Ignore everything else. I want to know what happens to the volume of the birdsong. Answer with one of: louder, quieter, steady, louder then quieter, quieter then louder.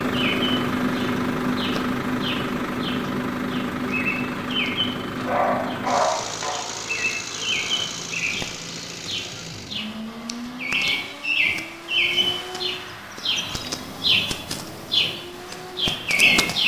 louder.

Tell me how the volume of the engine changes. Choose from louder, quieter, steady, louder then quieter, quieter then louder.
quieter.